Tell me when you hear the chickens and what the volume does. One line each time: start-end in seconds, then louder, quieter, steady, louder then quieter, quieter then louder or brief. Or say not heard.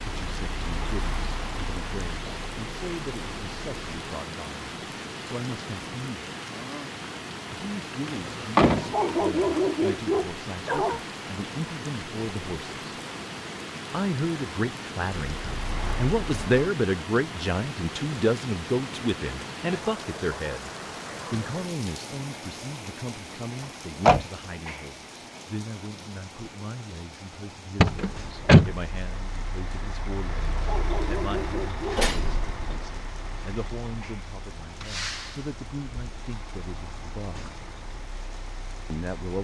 not heard.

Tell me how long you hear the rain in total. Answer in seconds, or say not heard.
39 s.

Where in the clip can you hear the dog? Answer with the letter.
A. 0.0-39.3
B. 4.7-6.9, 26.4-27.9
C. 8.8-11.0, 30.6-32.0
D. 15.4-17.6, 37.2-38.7
C.